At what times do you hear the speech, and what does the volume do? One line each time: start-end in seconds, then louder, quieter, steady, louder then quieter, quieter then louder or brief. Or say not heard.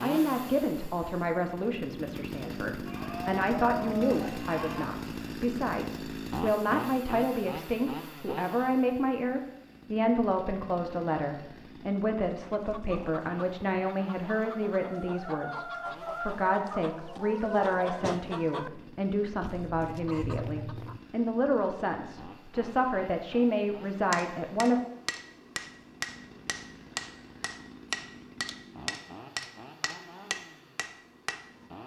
0.0-24.9 steady.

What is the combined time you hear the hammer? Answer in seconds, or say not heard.
8 s.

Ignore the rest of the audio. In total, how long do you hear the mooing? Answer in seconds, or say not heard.
2 s.